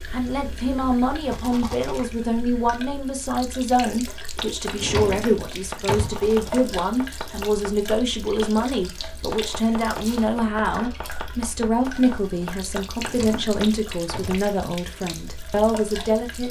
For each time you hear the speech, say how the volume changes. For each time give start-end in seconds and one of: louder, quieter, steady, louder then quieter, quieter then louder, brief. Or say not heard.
0.1-16.4 steady.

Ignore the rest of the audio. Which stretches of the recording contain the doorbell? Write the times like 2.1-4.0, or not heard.
not heard.